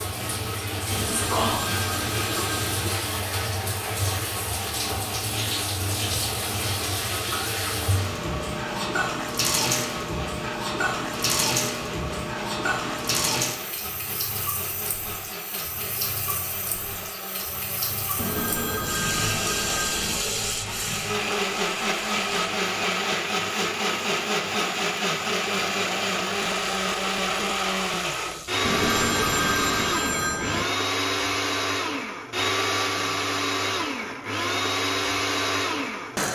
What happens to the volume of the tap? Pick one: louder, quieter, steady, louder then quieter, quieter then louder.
quieter.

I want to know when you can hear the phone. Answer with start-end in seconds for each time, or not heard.
0.9-2.9, 18.1-20.2, 28.6-30.6.